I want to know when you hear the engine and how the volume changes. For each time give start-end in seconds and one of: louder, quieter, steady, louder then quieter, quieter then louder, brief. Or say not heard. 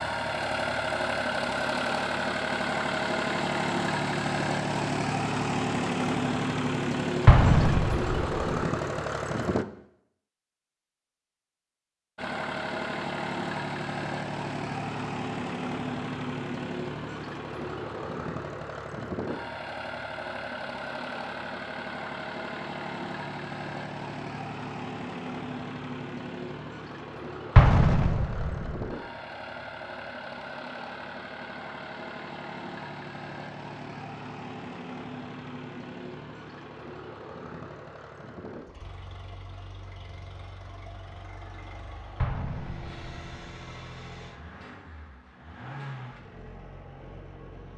0.0-9.7 steady
12.2-47.7 quieter.